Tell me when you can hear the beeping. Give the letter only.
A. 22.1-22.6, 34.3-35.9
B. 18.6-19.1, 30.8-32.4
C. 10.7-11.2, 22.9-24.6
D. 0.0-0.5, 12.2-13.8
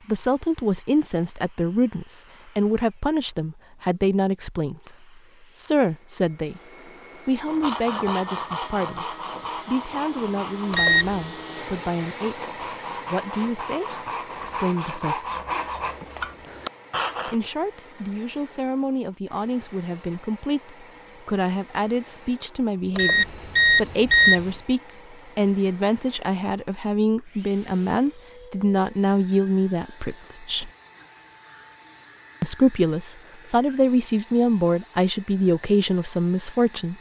C.